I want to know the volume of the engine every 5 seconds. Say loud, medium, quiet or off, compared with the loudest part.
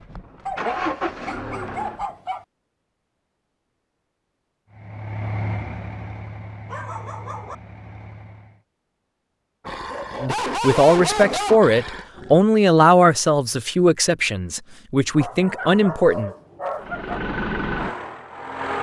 loud, medium, off, loud.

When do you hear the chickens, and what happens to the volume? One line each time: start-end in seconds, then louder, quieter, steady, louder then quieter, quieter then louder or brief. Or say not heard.
not heard.